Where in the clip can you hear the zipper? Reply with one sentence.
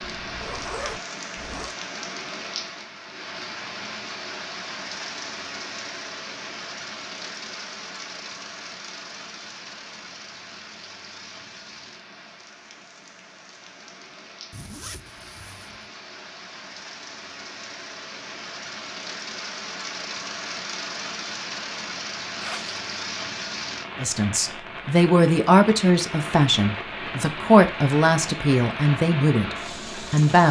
You can hear the zipper from 0.0 to 1.8 s, from 14.5 to 15.8 s and from 22.4 to 22.8 s.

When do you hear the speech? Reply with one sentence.
You can hear the speech from 24.0 to 30.4 s.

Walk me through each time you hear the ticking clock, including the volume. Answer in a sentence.
You can't hear the ticking clock here.